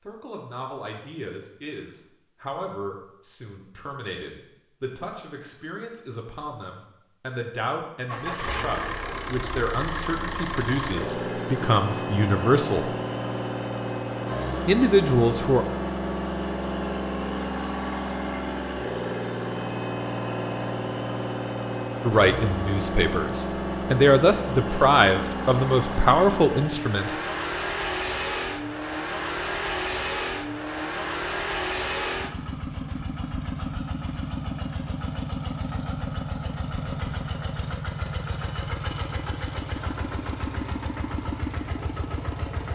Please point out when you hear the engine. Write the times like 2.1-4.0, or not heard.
8.1-42.7.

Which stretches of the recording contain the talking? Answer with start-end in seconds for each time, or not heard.
0.1-12.9, 14.7-15.7, 22.1-27.1.